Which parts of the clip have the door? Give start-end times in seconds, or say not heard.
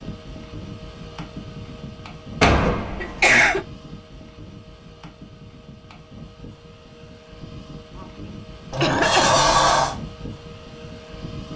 2.4-3.4, 8.7-9.9.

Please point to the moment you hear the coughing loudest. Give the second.
3 s.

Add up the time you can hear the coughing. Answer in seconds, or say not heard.
2 s.